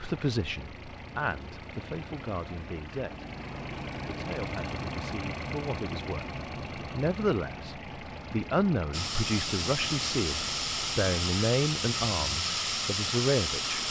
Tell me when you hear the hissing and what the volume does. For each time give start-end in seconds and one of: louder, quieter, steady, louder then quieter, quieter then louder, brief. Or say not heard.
8.9-13.8 steady.